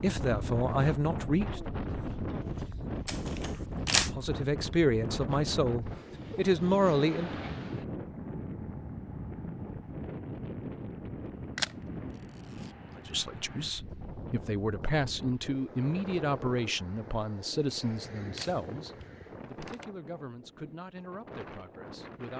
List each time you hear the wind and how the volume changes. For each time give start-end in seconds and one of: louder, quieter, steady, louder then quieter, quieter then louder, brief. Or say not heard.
0.0-22.3 quieter.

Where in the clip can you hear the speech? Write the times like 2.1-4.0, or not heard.
0.0-1.6, 4.1-7.3, 12.9-22.3.